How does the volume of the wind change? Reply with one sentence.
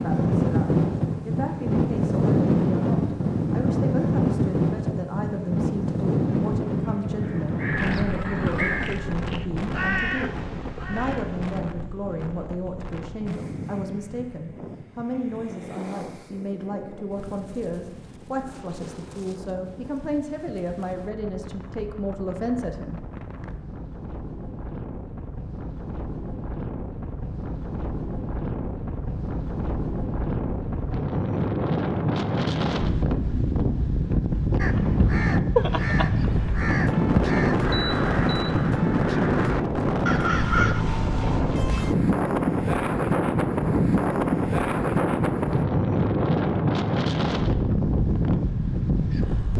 The volume of the wind goes down, then up.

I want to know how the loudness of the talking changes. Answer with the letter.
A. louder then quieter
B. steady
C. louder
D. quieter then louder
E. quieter
B.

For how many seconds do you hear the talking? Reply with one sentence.
You can hear the talking for 23 seconds altogether.